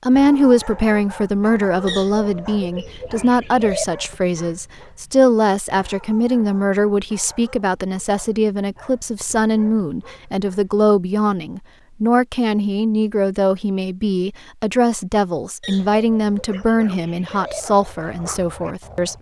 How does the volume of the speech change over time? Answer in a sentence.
The volume of the speech stays about the same.